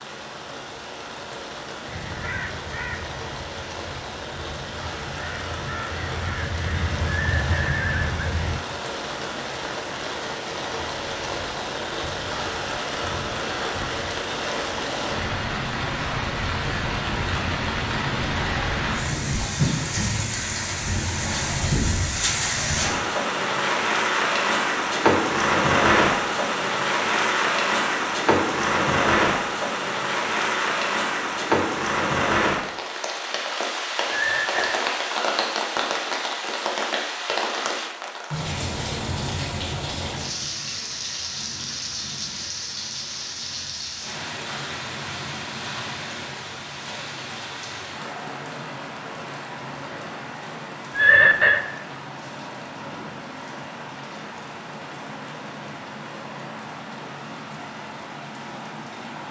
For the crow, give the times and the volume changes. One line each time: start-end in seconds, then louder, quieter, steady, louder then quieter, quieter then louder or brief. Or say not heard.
1.9-8.6 quieter then louder.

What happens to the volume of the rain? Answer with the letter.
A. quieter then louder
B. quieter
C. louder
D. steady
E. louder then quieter
E.